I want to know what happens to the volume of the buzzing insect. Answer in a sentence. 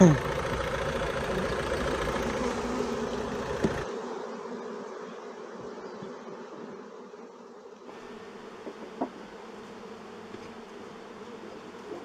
The loudness of the buzzing insect goes down.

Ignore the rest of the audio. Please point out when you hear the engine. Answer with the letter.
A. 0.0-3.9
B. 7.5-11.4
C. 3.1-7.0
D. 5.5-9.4
A.